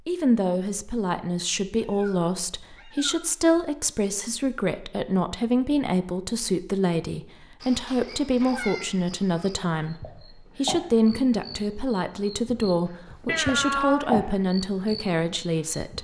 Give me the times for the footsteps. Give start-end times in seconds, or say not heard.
not heard.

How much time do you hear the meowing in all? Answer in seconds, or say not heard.
4 s.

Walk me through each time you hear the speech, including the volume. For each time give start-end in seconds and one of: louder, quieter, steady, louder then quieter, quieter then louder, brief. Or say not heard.
0.1-15.9 steady.